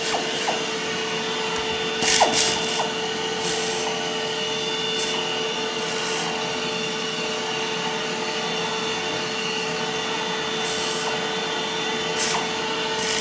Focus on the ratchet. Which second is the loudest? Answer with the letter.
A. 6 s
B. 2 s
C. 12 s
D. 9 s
B.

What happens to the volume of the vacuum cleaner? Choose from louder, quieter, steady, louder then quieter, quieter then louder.
steady.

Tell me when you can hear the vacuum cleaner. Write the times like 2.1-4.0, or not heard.
0.0-13.1.